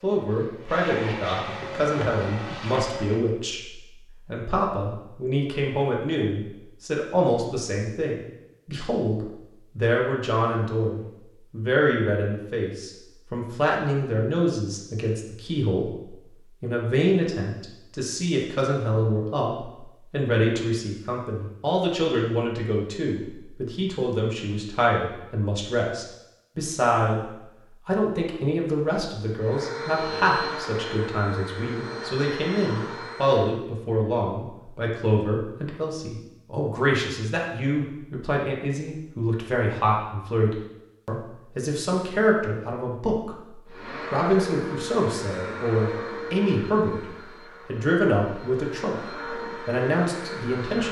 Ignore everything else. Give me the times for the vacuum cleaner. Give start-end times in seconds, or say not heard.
0.0-3.2, 29.4-33.5, 43.6-50.8.